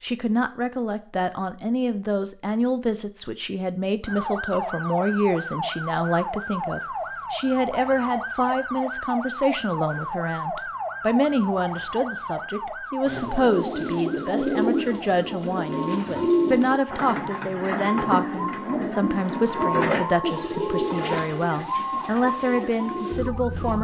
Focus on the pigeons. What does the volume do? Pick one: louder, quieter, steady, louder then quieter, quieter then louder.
quieter.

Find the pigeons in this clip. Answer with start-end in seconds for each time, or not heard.
13.1-23.7.